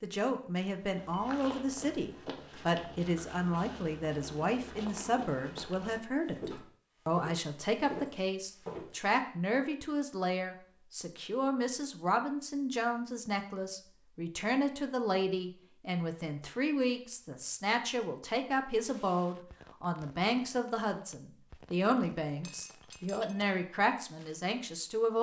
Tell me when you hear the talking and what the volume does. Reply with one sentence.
The talking can be heard from 0.0 to 25.1 s, at a steady volume.